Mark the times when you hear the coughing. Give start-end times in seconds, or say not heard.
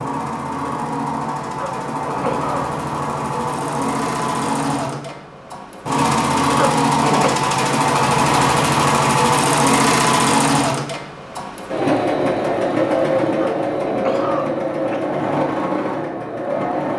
1.6-2.6, 6.5-7.3, 13.4-15.1.